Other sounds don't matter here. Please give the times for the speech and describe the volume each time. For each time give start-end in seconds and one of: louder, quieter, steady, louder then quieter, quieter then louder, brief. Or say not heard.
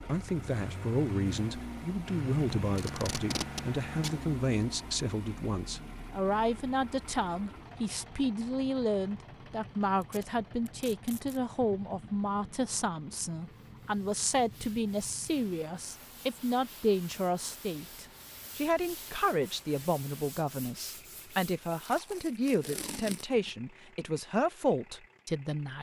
0.0-25.7 steady.